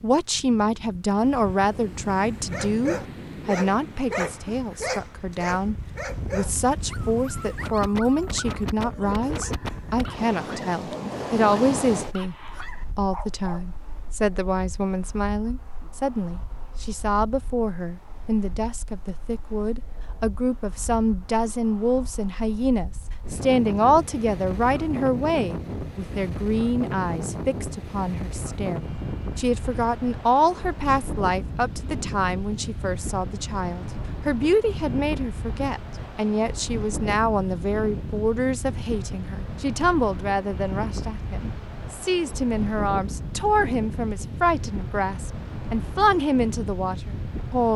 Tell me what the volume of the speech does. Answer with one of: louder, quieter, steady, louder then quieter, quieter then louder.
steady.